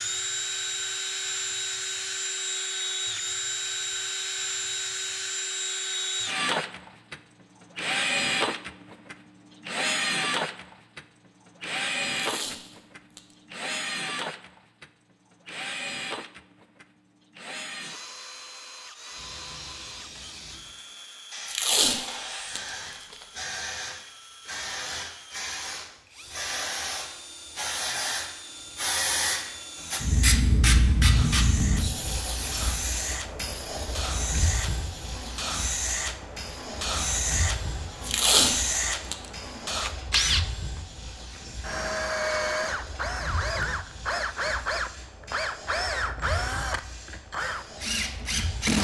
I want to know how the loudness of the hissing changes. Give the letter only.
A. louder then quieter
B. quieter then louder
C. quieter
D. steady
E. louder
A.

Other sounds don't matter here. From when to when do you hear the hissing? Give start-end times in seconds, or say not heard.
19.1-48.7.